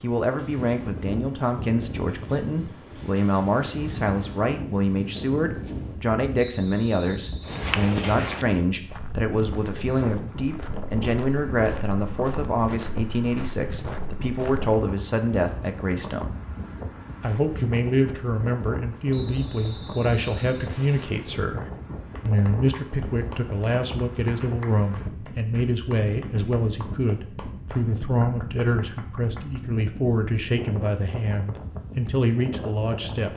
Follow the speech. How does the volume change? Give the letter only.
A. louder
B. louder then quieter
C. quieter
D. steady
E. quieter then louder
D.